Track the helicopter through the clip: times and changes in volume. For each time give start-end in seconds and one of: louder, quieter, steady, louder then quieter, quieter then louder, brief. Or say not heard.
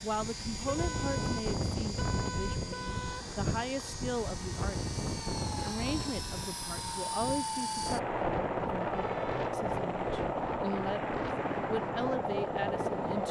0.0-13.2 louder.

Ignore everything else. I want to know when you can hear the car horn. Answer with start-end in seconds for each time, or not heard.
0.7-3.2, 8.9-9.3.